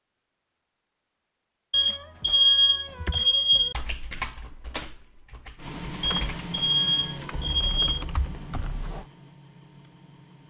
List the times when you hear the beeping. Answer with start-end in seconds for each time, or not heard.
1.7-3.8, 6.0-8.1.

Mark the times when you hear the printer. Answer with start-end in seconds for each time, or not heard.
5.5-10.4.